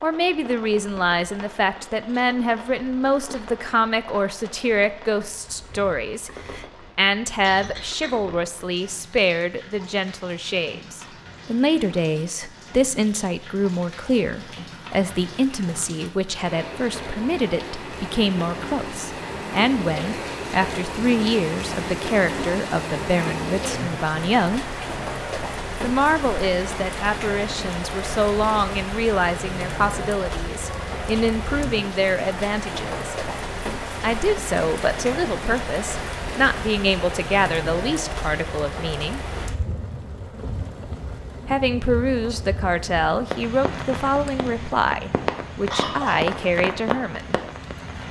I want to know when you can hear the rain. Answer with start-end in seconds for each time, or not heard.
0.0-48.0.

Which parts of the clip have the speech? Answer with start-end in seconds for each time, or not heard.
0.0-24.8, 25.8-33.1, 34.0-39.2, 41.5-47.4.